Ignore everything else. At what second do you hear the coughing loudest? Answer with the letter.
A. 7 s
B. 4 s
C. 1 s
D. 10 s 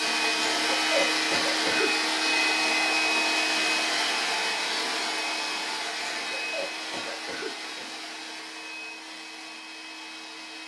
C.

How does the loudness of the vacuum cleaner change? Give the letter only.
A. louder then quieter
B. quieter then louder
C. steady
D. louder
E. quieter
E.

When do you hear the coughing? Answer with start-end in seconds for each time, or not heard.
0.4-1.9, 6.0-7.9.